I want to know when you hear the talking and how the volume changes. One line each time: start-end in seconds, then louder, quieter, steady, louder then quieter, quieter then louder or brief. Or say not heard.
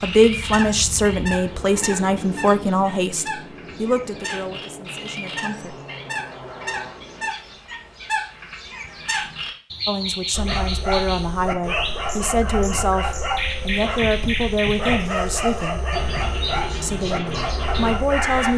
0.0-5.8 quieter
9.8-15.8 steady
16.8-18.5 brief.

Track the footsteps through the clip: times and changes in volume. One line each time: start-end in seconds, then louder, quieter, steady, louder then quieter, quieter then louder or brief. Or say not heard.
not heard.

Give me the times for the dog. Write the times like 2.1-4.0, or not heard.
10.3-18.5.